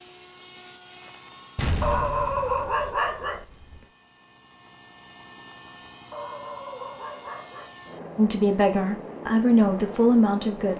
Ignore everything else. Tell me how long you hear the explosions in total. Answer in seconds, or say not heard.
2 s.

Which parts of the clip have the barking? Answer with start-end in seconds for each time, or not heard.
1.8-3.5, 6.1-7.8.